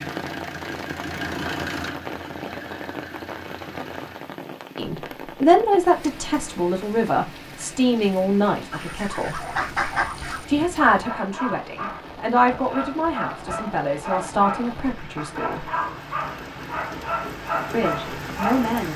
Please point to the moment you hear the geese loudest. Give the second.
10 s.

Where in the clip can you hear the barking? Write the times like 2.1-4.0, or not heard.
9.3-18.8.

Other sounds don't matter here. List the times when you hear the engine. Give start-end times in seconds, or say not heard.
0.0-4.3.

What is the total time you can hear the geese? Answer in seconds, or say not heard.
2 s.